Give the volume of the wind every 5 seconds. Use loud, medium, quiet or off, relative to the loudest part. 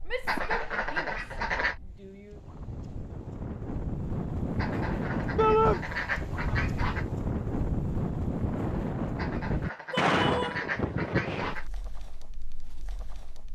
medium, loud, loud.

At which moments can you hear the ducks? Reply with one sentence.
The ducks can be heard from 0.2 to 1.8 s, from 4.5 to 7.0 s and from 9.2 to 11.7 s.